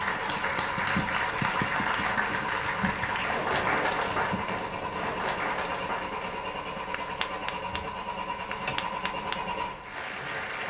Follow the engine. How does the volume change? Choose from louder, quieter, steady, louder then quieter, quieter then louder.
steady.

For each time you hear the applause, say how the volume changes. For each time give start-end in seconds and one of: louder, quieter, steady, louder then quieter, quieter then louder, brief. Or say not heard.
0.0-10.6 quieter.